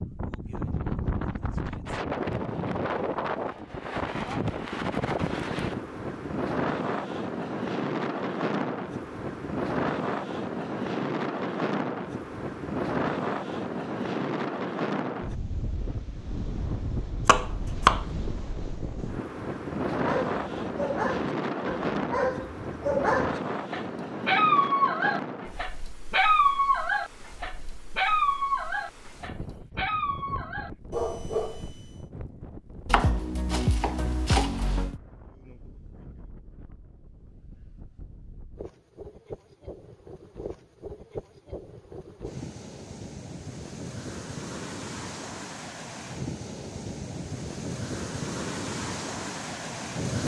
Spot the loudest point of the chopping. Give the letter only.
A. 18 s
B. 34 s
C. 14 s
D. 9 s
A.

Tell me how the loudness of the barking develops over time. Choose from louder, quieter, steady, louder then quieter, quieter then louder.
louder then quieter.